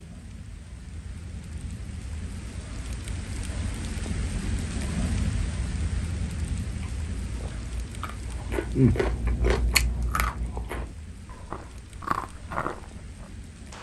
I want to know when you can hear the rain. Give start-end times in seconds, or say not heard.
0.0-13.7.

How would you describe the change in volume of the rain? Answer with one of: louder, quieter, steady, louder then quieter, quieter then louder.
louder then quieter.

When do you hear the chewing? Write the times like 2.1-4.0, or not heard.
6.8-13.3.